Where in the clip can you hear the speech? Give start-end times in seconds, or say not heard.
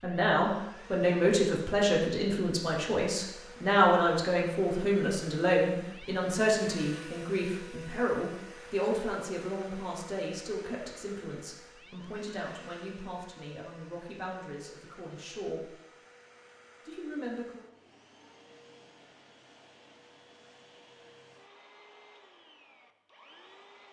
0.0-15.8, 16.9-17.6.